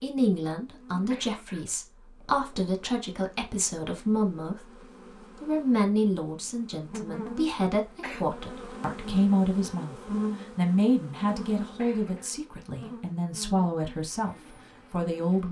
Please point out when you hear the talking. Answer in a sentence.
You can hear the talking from 0.0 to 15.4 s.